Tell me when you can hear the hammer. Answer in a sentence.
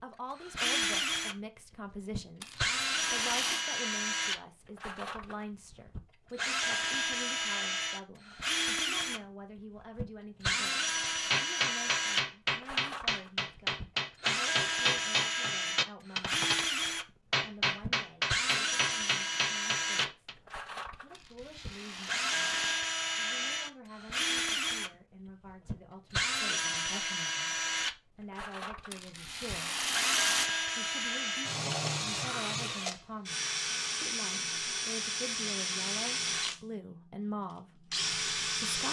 You can hear the hammer from 11.1 to 16.6 s and from 17.3 to 20.4 s.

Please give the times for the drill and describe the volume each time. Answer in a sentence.
You can hear the drill from 0.3 to 38.8 s, at a steady volume.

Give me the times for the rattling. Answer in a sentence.
You can hear the rattling from 2.4 to 3.6 s, from 21.1 to 22.9 s and from 28.9 to 30.5 s.